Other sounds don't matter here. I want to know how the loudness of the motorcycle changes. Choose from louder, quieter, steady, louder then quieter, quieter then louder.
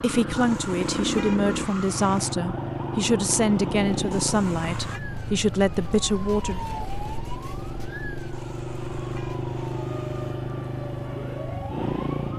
quieter then louder.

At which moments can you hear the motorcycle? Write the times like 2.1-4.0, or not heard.
0.0-12.3.